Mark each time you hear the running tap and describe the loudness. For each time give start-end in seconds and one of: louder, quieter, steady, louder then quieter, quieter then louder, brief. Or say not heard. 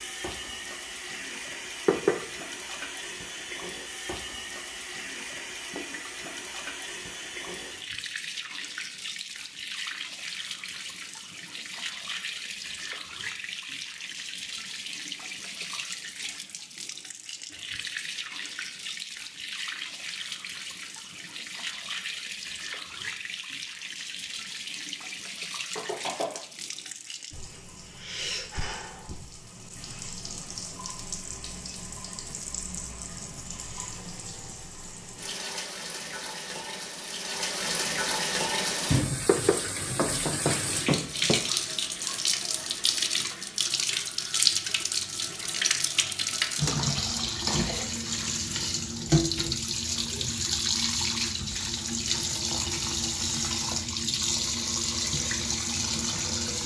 0.0-56.6 louder.